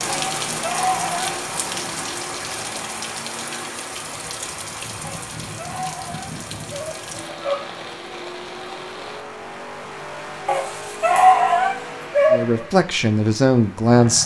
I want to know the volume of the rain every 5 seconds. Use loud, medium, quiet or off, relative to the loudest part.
loud, medium, off.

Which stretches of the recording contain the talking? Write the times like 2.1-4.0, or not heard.
12.3-14.2.